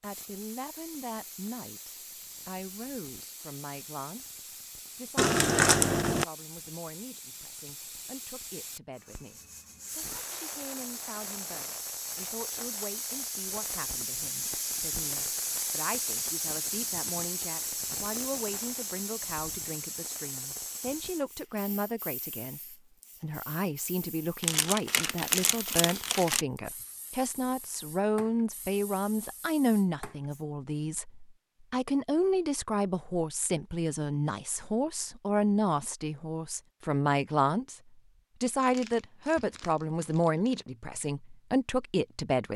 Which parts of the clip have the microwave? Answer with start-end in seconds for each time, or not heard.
not heard.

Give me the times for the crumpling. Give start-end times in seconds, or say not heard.
5.2-6.2, 24.4-26.4, 38.6-40.6.